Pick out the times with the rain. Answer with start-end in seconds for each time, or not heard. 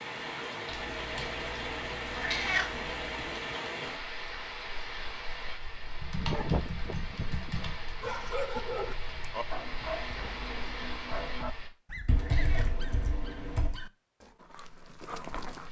0.0-11.7.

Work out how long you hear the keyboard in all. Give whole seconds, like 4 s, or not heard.
6 s.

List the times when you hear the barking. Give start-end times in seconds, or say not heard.
6.2-15.6.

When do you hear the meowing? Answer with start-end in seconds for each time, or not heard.
2.1-2.7, 12.2-12.8.